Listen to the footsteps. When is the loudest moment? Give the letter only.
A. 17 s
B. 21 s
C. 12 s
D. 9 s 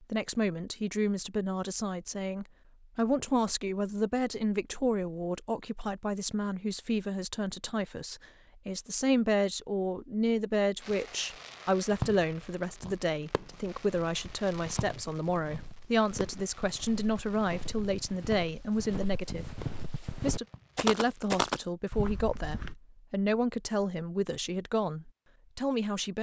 B.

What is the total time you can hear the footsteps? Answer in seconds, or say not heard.
9 s.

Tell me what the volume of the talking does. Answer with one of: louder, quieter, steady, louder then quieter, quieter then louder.
steady.